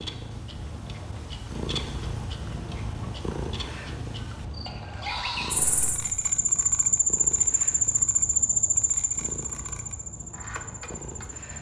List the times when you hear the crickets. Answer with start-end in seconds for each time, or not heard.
4.5-11.5.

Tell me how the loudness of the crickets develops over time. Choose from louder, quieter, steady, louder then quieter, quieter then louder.
louder then quieter.